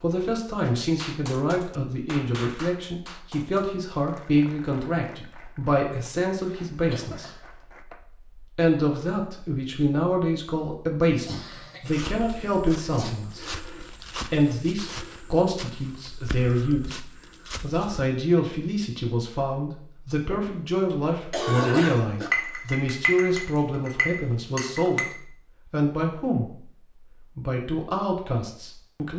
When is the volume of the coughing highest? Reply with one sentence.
The volume of the coughing peaks at 22 seconds.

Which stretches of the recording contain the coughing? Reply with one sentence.
The coughing can be heard from 6.8 to 7.4 s, from 11.2 to 13.1 s and from 20.3 to 22.3 s.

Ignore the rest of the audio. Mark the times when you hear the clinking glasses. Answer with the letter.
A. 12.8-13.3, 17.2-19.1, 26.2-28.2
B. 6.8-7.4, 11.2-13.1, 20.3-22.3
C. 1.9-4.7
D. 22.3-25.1
D.